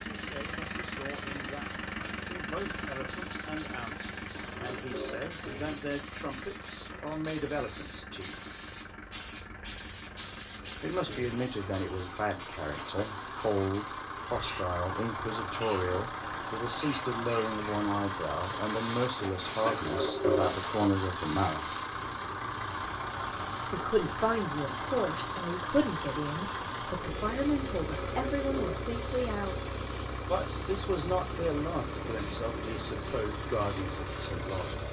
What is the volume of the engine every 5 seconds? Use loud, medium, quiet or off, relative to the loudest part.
loud, medium, medium, loud, loud, loud, loud.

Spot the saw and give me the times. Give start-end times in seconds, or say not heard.
not heard.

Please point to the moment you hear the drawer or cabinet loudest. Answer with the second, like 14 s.
20 s.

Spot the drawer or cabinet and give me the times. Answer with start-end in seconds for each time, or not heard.
4.3-5.3, 19.6-20.6, 27.9-28.9.